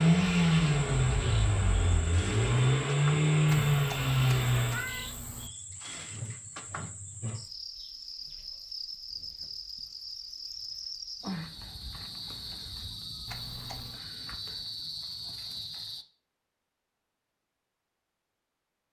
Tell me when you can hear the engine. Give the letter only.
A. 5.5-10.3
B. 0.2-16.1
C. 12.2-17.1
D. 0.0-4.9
D.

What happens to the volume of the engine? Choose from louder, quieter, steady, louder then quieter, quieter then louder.
quieter then louder.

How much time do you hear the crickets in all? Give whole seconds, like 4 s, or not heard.
16 s.